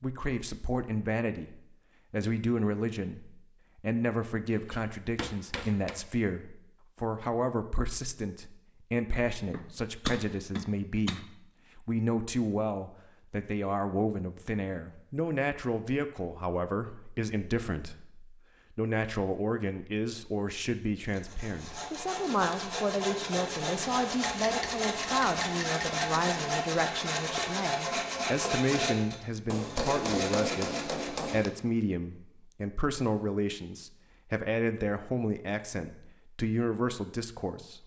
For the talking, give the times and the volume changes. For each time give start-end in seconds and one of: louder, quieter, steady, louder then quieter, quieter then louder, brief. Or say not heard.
0.0-37.8 steady.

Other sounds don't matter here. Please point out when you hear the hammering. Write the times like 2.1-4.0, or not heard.
4.5-6.0, 9.5-11.2, 24.4-26.1, 29.4-31.5.